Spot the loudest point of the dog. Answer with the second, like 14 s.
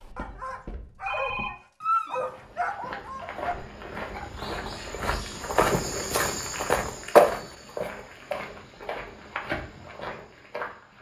2 s.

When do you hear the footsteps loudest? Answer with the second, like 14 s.
7 s.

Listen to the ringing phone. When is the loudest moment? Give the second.
1 s.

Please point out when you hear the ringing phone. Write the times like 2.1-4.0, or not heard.
0.1-1.5.